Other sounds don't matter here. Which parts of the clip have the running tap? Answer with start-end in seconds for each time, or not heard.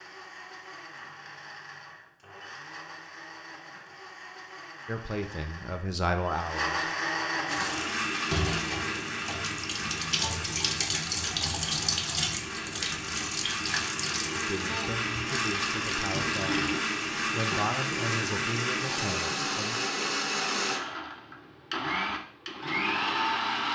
7.5-19.6.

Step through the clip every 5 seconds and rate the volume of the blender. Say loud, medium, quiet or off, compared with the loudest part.
quiet, loud, medium, loud, loud.